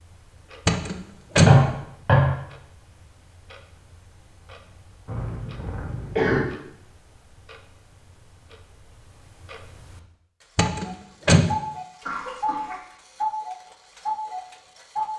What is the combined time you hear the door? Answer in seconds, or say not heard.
2 s.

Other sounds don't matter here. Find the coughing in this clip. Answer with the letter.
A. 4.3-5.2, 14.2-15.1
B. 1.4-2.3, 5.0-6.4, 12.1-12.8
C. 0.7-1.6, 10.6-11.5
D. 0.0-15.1
B.